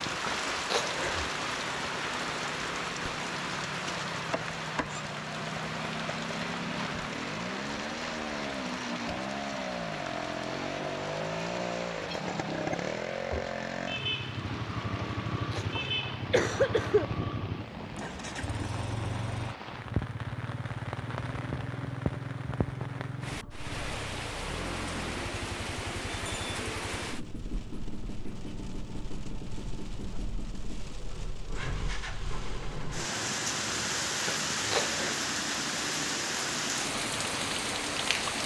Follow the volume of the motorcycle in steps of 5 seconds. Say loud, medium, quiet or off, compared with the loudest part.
medium, loud, loud, loud, medium, medium, medium, medium.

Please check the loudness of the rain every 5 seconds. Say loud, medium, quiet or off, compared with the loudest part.
loud, medium, medium, medium, medium, medium, loud, loud.